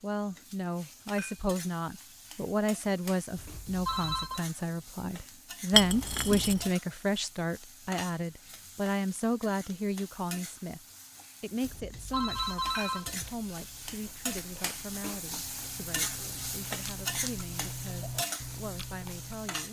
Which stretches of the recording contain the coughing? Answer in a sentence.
You can't hear the coughing here.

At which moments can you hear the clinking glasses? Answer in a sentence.
You can hear the clinking glasses from 5.7 to 6.7 s.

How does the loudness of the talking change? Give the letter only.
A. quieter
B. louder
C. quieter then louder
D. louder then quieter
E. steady
A.